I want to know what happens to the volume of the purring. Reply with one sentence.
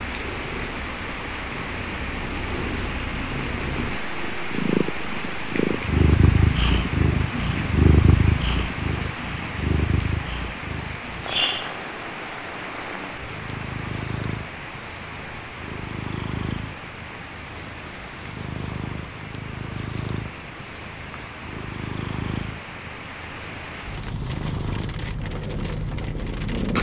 The loudness of the purring goes up, then down.